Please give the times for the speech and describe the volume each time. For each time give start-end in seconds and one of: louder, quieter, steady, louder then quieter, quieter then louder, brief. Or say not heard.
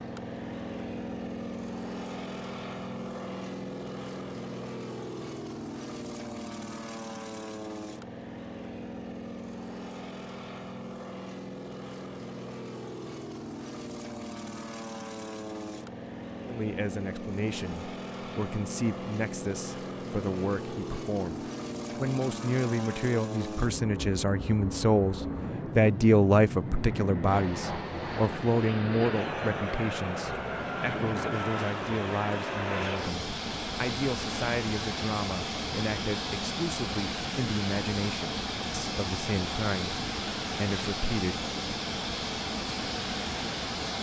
16.4-41.5 louder then quieter.